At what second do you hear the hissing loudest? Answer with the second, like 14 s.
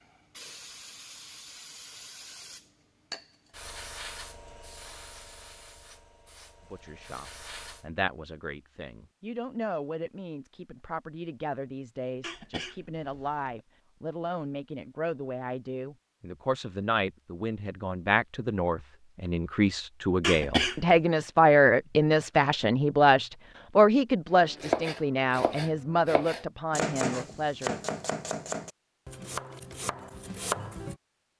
4 s.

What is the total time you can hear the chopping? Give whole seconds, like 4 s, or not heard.
7 s.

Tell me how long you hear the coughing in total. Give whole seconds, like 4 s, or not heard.
2 s.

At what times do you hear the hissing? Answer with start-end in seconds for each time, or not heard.
0.0-7.9.